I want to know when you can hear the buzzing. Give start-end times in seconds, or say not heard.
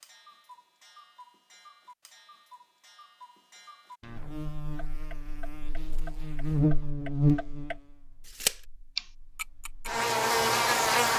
4.1-11.1.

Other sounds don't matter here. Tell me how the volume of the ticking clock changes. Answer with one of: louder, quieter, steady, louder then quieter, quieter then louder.
louder.